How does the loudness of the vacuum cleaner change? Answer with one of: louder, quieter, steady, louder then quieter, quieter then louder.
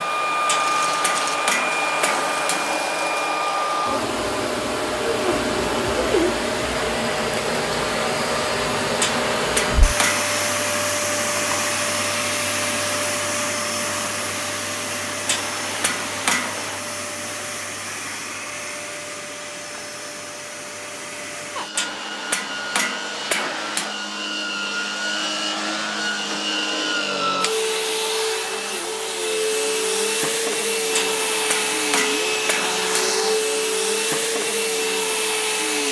quieter then louder.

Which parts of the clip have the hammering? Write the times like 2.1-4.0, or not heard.
0.5-2.9, 8.9-10.3, 15.2-16.8, 21.8-23.9, 30.9-33.1.